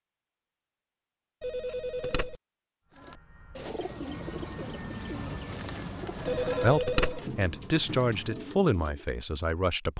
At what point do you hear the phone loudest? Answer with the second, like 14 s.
7 s.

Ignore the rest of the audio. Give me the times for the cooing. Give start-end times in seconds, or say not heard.
2.9-9.1.